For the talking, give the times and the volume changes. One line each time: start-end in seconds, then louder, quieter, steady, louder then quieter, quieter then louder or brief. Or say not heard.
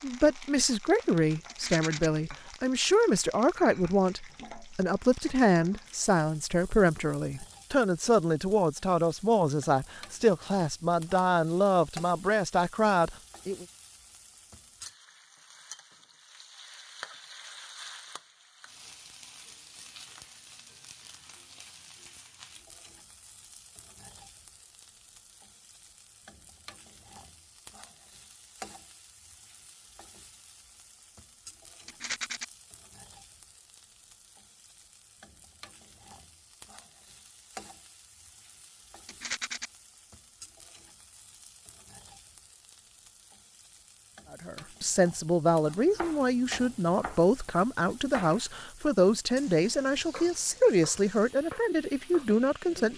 0.0-13.7 steady
44.3-52.9 steady.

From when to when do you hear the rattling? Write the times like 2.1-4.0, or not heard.
1.4-2.1, 31.9-32.5, 39.0-39.7.